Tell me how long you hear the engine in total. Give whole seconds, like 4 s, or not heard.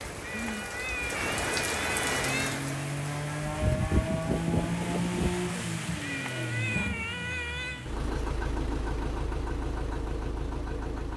9 s.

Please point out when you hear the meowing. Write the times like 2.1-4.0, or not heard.
0.2-2.6, 6.0-7.8.